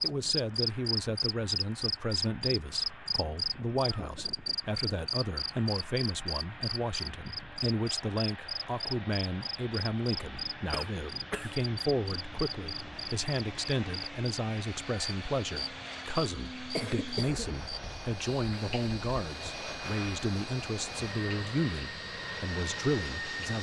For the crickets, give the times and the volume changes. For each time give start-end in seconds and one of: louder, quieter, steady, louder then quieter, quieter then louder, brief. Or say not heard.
0.0-23.5 quieter.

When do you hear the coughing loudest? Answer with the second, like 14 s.
17 s.